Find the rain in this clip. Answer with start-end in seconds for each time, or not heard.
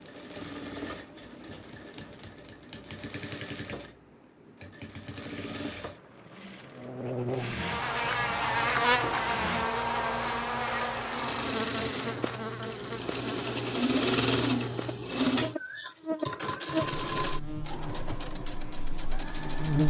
not heard.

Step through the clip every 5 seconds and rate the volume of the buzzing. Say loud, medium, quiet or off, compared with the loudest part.
off, loud, medium, medium.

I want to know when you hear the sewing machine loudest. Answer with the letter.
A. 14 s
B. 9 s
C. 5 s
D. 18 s
A.